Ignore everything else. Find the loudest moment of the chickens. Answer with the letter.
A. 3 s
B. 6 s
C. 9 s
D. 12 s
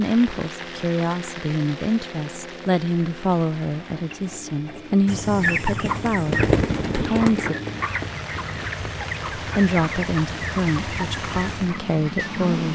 B.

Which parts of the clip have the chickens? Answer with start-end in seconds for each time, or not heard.
5.0-12.5.